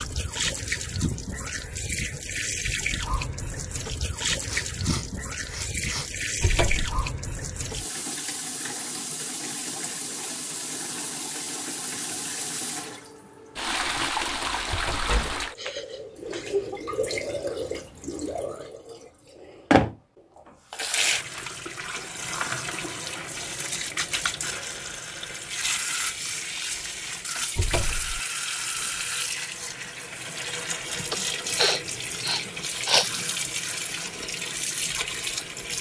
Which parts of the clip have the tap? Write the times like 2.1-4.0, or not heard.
0.0-35.7.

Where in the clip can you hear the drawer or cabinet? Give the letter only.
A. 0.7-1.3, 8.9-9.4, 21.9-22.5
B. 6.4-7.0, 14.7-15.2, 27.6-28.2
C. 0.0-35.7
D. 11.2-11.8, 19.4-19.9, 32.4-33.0
B.